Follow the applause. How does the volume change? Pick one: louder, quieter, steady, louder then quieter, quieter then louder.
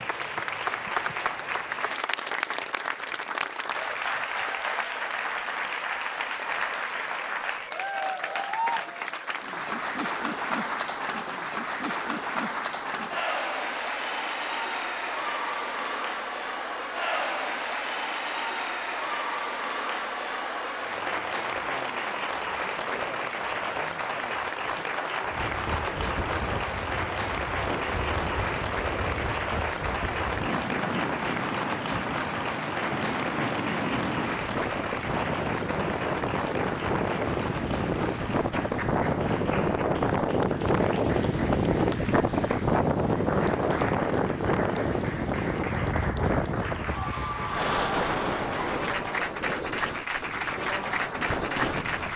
steady.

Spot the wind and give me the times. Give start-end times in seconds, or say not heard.
25.2-52.1.